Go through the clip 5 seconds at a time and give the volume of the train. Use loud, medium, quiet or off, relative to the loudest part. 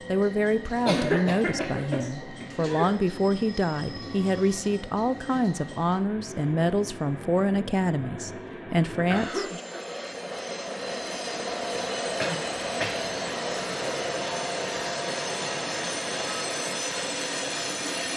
medium, medium, loud, loud.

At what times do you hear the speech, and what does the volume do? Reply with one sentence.
The speech can be heard from 0.1 to 9.6 s, at a steady volume.